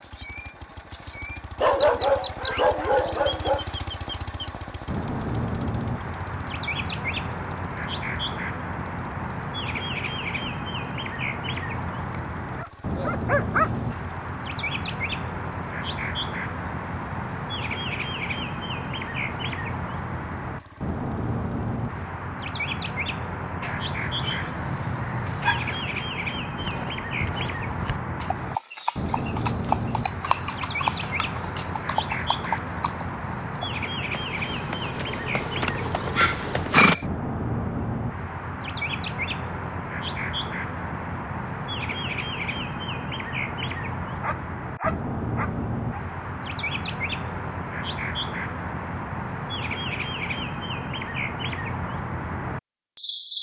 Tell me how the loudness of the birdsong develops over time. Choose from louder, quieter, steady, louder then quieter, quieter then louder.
steady.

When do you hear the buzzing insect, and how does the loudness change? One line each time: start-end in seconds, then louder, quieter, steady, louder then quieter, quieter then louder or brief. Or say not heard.
not heard.